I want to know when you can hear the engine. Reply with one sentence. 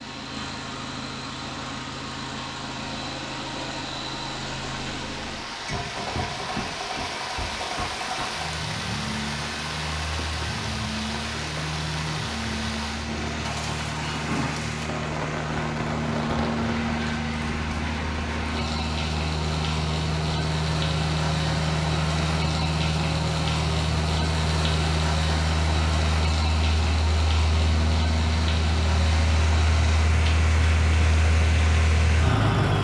The engine can be heard from 0.0 to 32.8 s.